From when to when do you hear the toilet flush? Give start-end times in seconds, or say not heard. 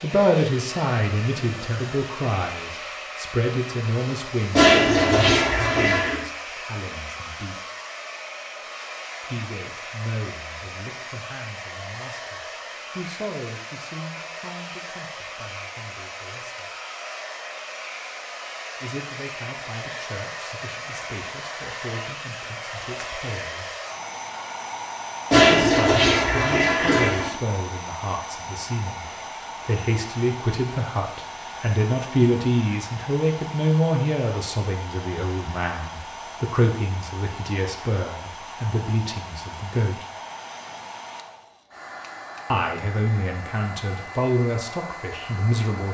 4.5-6.2, 25.3-27.3.